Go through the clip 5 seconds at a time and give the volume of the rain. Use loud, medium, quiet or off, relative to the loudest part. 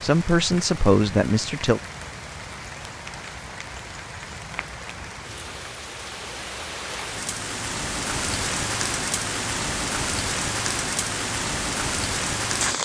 medium, loud, loud.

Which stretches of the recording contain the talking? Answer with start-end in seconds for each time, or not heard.
0.0-1.8.